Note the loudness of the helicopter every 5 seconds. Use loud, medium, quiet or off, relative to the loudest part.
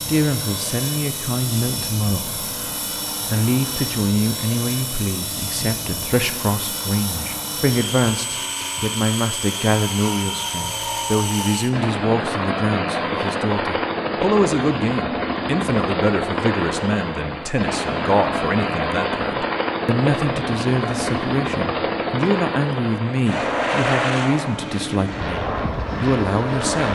medium, medium, loud, loud, loud, loud.